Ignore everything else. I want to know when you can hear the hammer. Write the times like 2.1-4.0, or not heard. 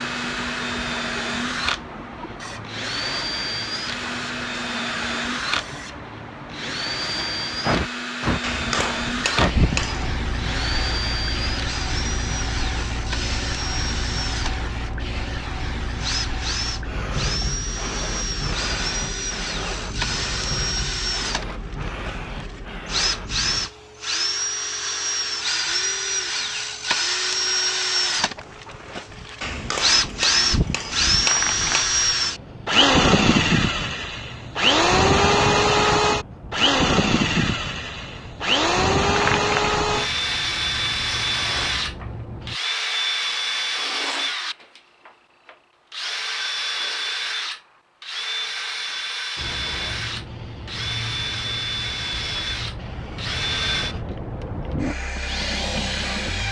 8.4-10.2, 29.4-31.9.